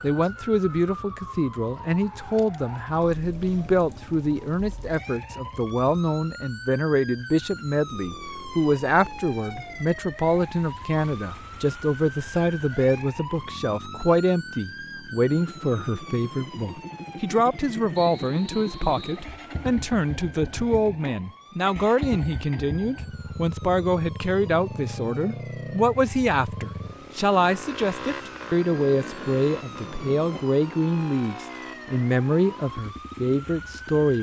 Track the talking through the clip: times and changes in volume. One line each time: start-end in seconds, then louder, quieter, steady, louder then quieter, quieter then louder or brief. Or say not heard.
0.0-34.1 steady.